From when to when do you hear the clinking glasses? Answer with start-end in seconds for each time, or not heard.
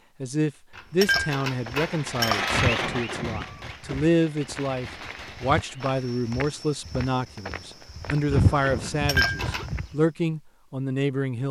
0.8-2.5, 8.8-9.7.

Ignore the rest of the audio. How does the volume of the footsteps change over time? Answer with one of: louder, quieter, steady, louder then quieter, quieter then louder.
quieter then louder.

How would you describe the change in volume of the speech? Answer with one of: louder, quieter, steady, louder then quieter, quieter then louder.
steady.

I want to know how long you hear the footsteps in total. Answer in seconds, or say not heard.
9 s.